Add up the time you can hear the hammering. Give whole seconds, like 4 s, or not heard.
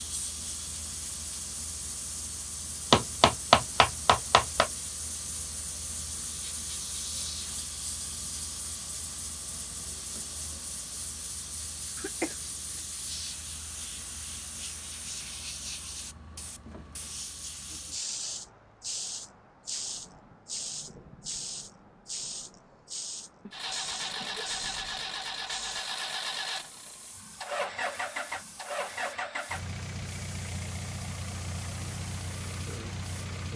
2 s.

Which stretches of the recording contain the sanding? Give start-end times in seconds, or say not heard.
not heard.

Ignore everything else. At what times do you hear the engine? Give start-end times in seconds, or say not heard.
23.5-33.5.